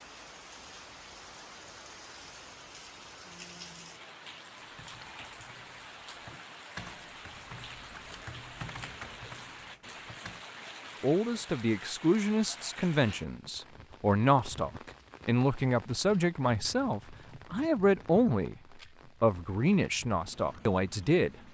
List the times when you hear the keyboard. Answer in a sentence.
You can hear the keyboard from 4.5 to 10.5 s.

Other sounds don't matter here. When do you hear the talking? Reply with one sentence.
The talking can be heard from 11.0 to 18.6 s and from 19.2 to 21.4 s.